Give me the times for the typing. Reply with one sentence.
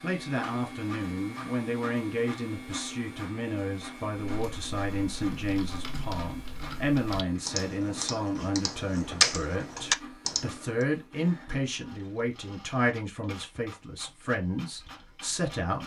The typing can be heard from 4.3 to 10.8 s.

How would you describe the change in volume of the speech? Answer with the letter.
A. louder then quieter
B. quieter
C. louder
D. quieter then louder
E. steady
E.